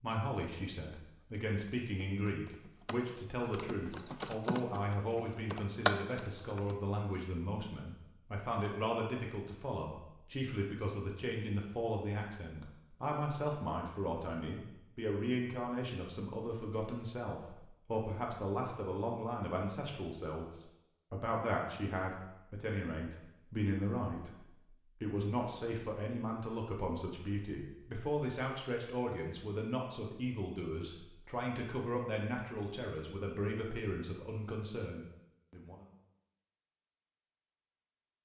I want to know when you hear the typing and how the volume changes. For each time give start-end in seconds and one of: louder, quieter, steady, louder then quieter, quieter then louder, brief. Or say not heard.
1.2-6.8 louder.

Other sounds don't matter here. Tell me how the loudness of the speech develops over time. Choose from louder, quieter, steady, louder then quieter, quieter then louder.
steady.